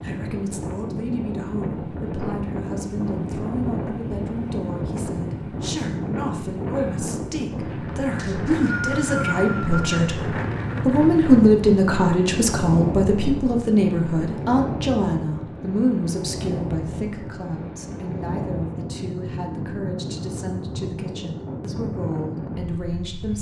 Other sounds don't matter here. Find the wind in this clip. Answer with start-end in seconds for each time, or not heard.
0.0-23.3.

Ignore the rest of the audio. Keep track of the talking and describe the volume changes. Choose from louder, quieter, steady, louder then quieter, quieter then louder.
louder then quieter.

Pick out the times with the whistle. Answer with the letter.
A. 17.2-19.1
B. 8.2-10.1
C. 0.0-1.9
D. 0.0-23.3
B.